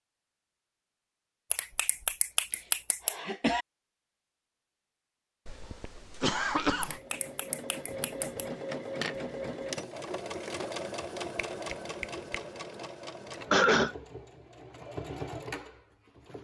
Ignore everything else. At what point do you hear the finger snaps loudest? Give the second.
2 s.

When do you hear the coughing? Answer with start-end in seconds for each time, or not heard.
2.5-3.6, 5.5-7.0, 13.5-13.9.